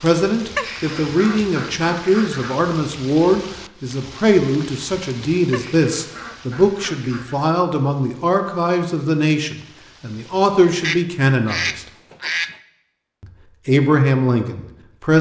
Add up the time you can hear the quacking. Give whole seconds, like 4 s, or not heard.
6 s.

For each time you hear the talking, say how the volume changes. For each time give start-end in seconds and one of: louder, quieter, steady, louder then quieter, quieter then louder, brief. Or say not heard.
0.0-11.8 steady
13.2-15.1 brief.